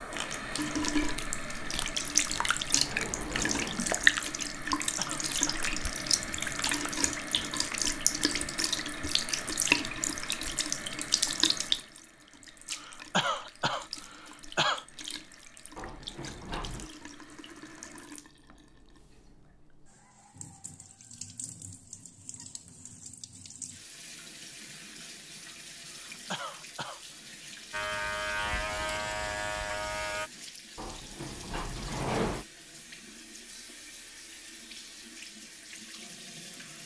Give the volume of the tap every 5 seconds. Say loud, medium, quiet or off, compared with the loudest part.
loud, loud, medium, quiet, quiet, quiet, quiet, quiet.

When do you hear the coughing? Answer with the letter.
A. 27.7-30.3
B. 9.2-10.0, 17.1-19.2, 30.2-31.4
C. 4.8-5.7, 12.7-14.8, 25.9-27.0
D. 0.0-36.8
C.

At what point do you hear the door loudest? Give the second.
32 s.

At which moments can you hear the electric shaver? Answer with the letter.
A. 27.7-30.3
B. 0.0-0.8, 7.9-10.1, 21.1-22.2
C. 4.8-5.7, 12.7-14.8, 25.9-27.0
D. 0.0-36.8
A.